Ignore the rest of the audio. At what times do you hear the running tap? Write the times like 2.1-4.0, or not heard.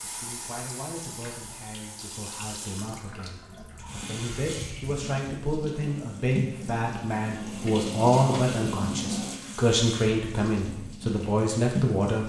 0.0-12.2.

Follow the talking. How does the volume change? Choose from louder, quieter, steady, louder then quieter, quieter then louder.
louder.